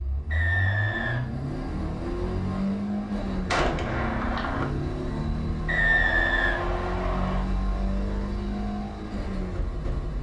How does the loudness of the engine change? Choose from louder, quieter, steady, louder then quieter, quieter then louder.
steady.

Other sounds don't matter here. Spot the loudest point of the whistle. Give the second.
6 s.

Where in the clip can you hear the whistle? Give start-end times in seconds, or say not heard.
0.3-1.2, 5.7-7.4.